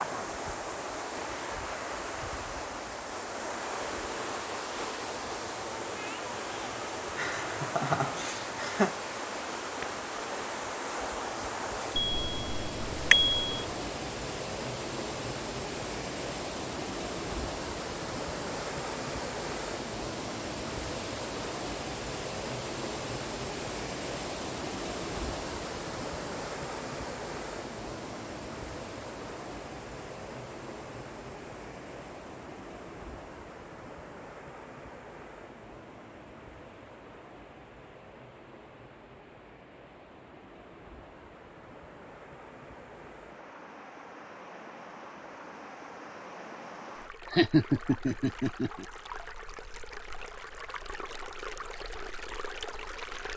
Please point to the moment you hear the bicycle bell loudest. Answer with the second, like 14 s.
13 s.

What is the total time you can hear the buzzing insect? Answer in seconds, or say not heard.
not heard.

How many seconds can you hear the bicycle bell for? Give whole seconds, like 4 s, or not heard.
2 s.